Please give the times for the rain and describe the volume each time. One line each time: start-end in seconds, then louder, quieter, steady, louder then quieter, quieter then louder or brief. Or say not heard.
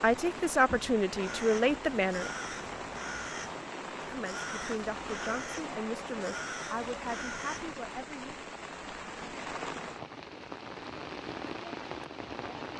0.0-12.7 steady.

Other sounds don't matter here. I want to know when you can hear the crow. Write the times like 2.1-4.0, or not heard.
1.2-7.8.